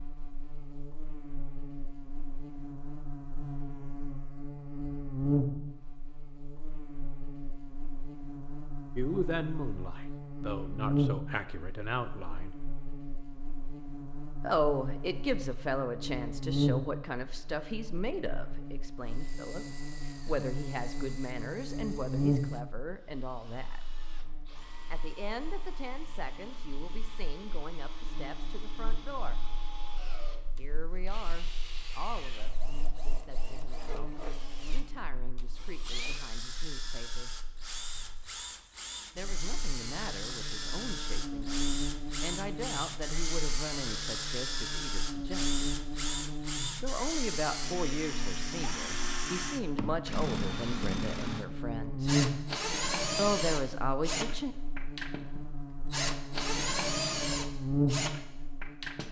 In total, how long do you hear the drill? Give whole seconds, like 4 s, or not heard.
40 s.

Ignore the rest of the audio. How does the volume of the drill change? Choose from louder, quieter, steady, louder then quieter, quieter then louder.
louder.